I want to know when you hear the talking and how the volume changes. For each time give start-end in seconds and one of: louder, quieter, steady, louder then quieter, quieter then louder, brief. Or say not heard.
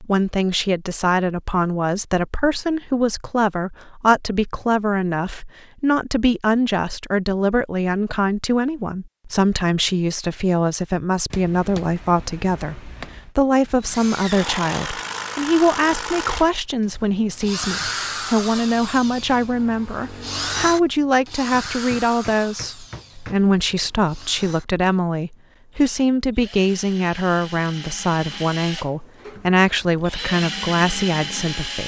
0.0-31.8 steady.